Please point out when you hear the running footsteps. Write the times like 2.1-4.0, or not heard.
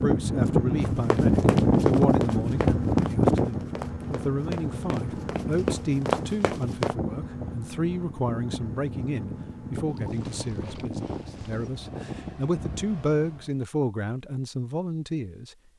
0.8-7.0.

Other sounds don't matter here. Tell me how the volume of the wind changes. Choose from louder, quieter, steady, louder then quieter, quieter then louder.
quieter.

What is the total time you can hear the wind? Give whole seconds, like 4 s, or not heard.
13 s.